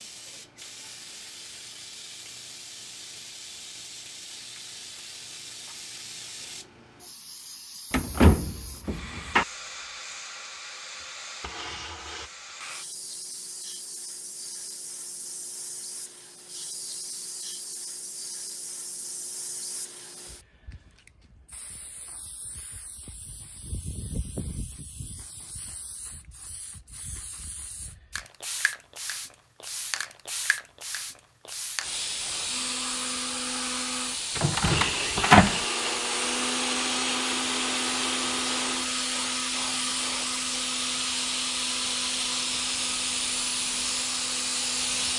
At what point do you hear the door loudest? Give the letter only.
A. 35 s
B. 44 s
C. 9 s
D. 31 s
A.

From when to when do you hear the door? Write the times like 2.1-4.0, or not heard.
7.9-9.4, 34.4-35.6.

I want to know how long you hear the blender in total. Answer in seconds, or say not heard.
13 s.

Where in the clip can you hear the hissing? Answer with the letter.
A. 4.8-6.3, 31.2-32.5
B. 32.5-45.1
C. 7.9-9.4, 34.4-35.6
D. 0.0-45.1
D.